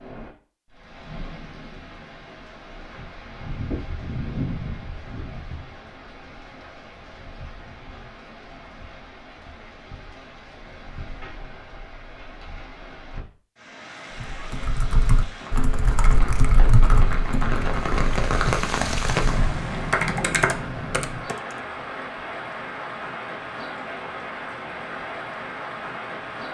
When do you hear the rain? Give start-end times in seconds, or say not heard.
0.0-26.4.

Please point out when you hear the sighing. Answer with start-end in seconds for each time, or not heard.
not heard.